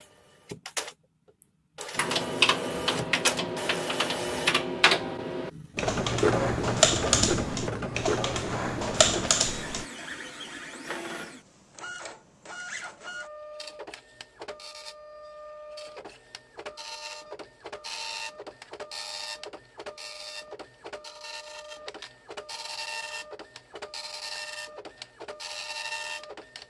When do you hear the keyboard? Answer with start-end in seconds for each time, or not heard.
1.9-9.8.